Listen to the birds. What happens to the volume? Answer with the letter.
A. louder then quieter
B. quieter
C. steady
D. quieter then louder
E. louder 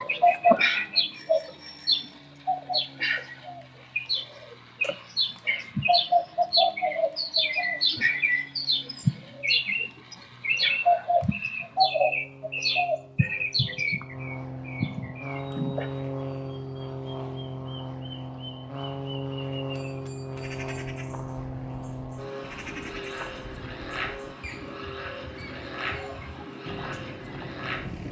B.